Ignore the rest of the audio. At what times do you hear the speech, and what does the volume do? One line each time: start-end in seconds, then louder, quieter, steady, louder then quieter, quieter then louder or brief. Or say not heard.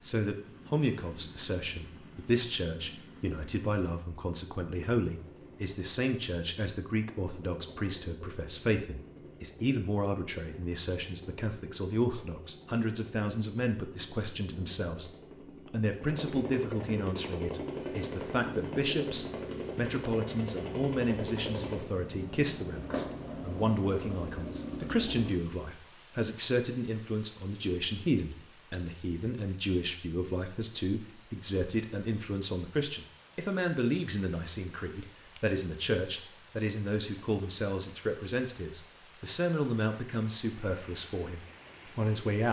0.0-15.1 steady
15.7-42.4 steady.